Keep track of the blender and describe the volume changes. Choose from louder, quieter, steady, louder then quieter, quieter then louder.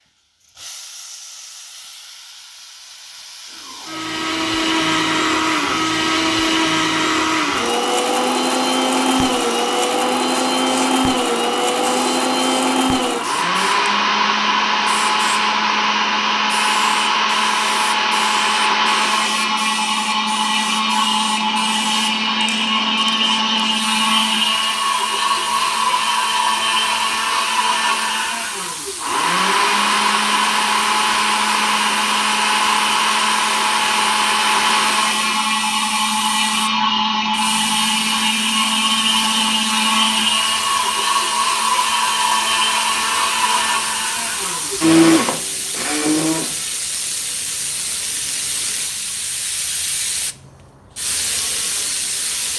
steady.